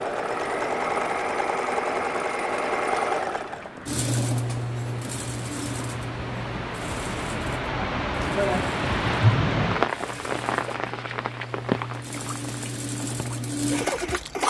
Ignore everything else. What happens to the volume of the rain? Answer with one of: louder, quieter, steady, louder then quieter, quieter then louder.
louder then quieter.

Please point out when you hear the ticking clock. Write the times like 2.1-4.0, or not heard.
not heard.